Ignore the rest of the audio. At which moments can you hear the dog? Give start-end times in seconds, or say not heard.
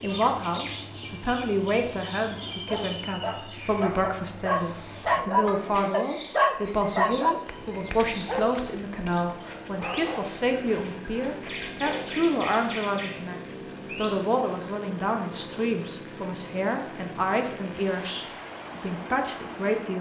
2.6-12.2.